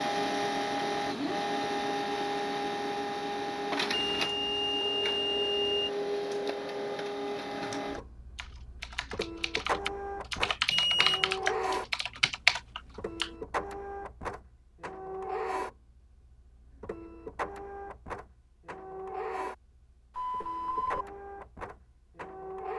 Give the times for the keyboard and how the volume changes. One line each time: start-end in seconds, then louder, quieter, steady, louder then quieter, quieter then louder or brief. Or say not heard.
7.5-13.3 louder.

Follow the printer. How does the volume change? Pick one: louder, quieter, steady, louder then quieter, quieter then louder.
quieter.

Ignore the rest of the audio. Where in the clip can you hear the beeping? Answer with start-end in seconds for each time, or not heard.
4.1-5.9, 10.7-11.3, 20.1-21.1.